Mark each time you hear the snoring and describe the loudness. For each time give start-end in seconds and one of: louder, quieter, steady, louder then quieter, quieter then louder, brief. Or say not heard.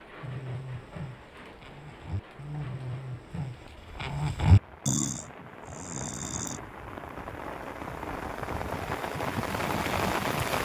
0.2-6.6 louder then quieter.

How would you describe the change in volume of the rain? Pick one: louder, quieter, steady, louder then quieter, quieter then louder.
louder.